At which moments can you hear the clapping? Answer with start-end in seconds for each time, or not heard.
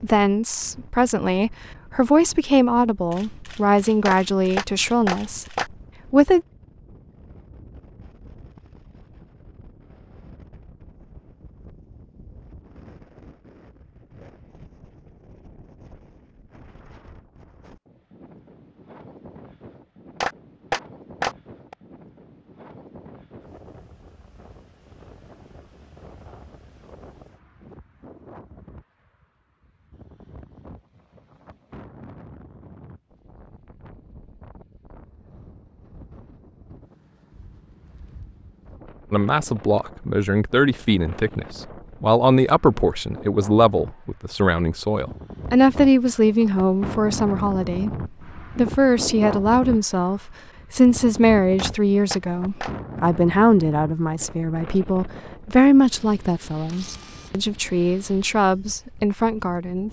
4.0-5.7, 20.2-21.8, 51.5-52.7.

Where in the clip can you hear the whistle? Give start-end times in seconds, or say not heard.
not heard.